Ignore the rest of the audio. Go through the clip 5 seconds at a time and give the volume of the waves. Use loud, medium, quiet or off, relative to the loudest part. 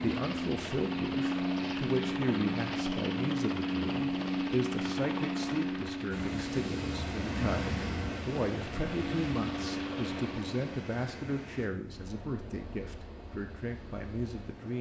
off, loud, medium.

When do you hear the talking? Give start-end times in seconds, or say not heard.
0.0-14.7.